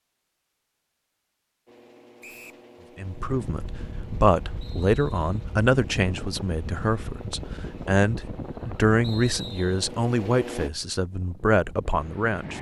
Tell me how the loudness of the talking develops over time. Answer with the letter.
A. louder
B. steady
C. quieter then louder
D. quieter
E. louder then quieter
B.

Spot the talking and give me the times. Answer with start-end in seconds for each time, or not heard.
3.0-12.5.